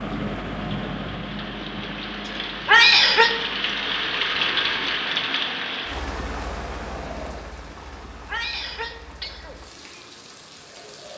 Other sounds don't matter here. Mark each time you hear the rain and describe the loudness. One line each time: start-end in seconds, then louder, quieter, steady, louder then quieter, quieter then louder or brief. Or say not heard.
0.0-11.1 louder then quieter.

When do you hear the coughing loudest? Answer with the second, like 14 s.
3 s.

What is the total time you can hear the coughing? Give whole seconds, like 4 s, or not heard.
2 s.